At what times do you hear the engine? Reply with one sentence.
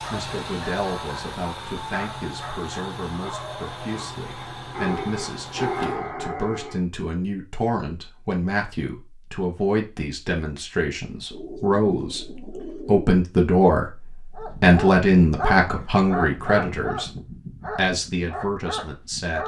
You can hear the engine from 0.0 to 6.1 s.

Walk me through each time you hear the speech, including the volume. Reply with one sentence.
The speech can be heard from 0.0 to 17.1 s, getting louder; and briefly from 17.8 to 19.4 s.